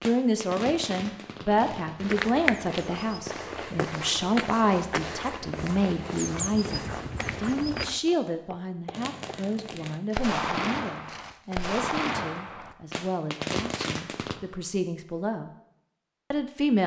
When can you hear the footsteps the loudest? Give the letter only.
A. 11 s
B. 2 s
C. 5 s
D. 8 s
B.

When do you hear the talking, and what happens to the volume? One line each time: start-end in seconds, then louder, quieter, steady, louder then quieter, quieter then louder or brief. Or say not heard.
0.0-15.5 quieter
16.3-16.8 brief.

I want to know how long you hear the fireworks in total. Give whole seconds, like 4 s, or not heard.
8 s.